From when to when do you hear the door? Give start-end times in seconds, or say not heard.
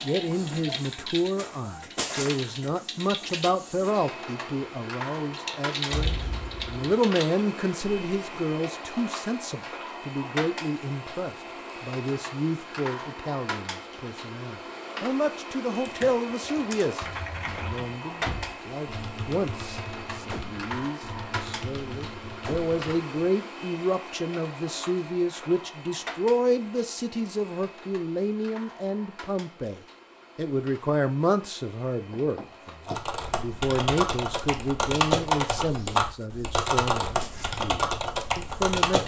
5.8-6.8, 18.1-18.6, 32.1-33.0.